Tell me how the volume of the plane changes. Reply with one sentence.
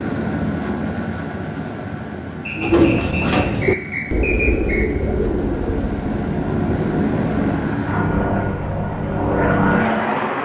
The volume of the plane goes down, then up.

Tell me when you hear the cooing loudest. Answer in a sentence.
The volume of the cooing peaks at 3 seconds.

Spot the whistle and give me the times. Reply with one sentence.
The whistle can be heard from 2.5 to 4.9 s.